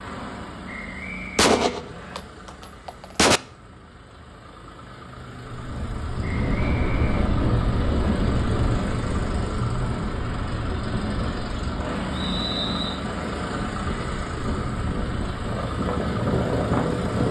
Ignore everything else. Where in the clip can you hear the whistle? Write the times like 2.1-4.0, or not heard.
0.7-2.2, 6.2-7.2, 12.2-12.9.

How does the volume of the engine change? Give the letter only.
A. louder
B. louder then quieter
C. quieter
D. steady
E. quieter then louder
A.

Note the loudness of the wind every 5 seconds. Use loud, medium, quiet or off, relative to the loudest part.
off, loud, medium, loud.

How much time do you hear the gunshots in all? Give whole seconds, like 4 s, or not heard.
2 s.